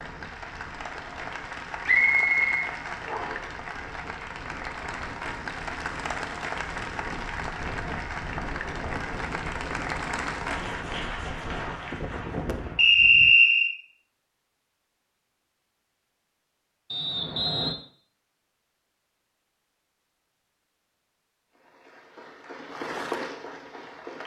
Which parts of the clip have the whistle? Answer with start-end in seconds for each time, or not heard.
1.9-3.4, 12.8-13.8, 16.9-17.8.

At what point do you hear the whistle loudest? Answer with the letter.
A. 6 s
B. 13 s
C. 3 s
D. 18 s
B.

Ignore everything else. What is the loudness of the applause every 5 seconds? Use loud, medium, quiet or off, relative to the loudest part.
loud, loud, loud, off, loud.